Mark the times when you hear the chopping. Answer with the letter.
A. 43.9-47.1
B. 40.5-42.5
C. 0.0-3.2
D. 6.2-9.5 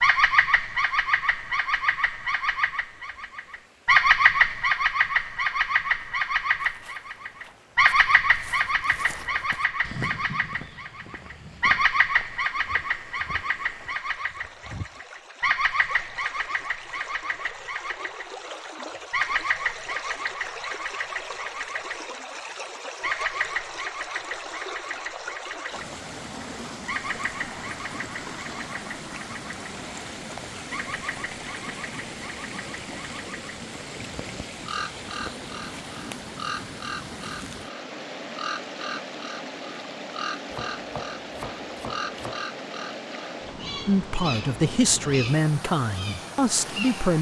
B.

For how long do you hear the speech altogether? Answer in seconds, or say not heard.
3 s.